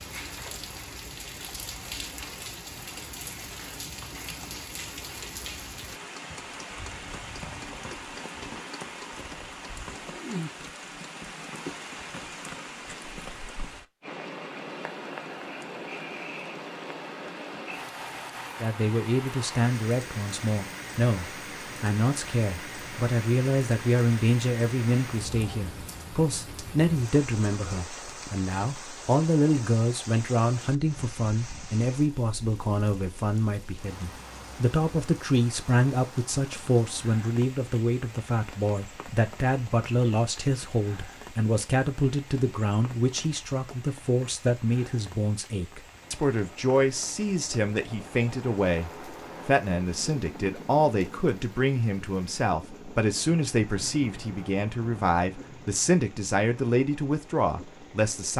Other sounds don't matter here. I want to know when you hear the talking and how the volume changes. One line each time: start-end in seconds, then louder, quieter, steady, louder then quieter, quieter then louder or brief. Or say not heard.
18.6-58.3 steady.